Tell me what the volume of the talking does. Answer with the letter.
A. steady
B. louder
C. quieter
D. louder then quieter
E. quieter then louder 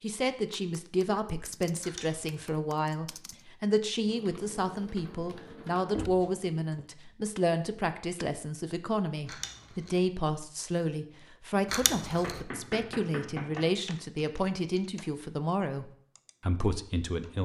A.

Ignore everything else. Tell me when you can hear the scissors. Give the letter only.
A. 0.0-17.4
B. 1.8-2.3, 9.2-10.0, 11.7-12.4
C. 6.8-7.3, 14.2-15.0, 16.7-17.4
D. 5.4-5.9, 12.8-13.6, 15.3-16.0
B.